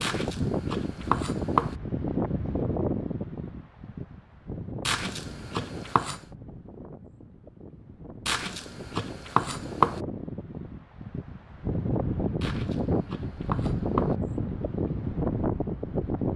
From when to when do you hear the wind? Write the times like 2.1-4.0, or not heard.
0.0-16.3.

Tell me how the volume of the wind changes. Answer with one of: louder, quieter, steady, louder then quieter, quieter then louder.
quieter then louder.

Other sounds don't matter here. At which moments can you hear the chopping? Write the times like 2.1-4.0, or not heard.
0.0-1.8, 4.8-6.2, 8.2-10.0, 12.4-14.2.